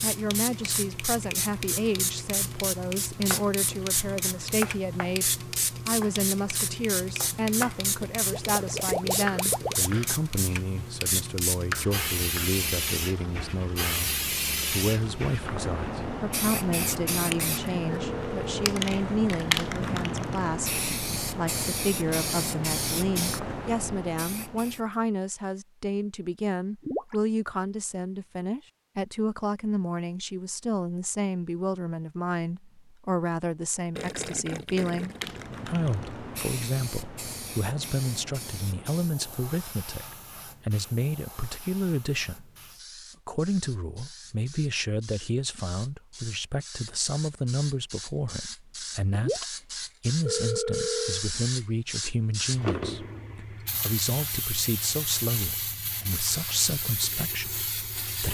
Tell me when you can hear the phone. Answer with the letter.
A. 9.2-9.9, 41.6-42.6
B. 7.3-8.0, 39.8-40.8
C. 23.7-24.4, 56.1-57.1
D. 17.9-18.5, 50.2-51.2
D.